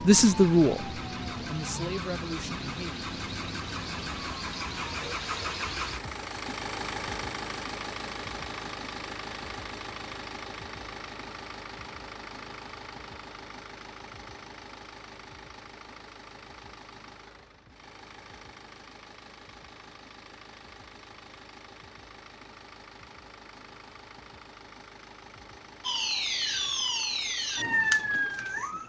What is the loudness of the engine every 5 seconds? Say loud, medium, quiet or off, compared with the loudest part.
loud, loud, medium, quiet, quiet, quiet.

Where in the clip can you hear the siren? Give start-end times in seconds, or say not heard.
0.0-5.2, 25.8-28.8.